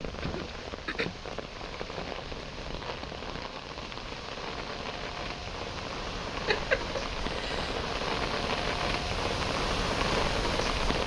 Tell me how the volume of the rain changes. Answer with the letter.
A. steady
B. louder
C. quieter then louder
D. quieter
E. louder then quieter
B.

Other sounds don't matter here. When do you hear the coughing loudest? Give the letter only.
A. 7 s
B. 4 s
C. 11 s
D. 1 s
A.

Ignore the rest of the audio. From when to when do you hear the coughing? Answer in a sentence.
You can hear the coughing from 0.2 to 1.1 s and from 6.5 to 7.8 s.